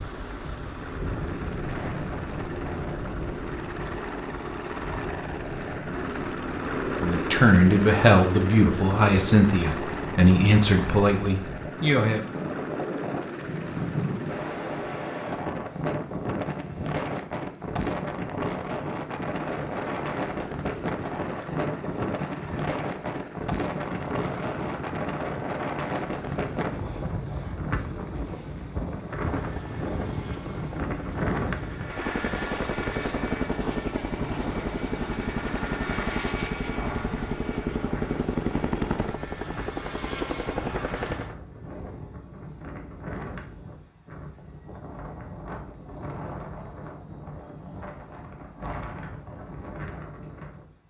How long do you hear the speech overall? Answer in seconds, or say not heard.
5 s.